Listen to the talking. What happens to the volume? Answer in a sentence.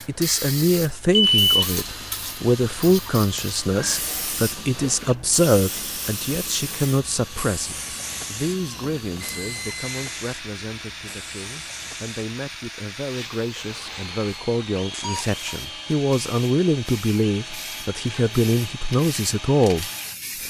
The loudness of the talking goes down, then up.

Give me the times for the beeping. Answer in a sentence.
The beeping can be heard from 1.1 to 1.6 s, from 9.2 to 10.2 s and from 14.9 to 15.6 s.